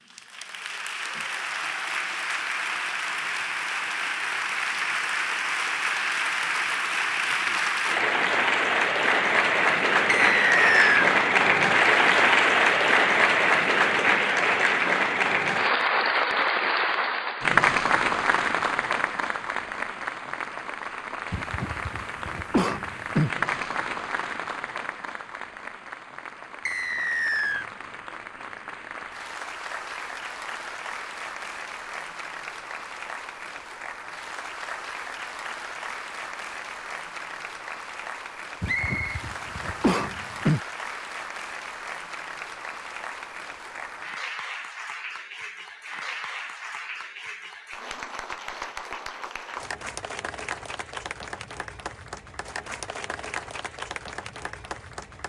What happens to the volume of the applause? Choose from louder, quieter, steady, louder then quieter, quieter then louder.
quieter.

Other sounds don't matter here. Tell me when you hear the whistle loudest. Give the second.
11 s.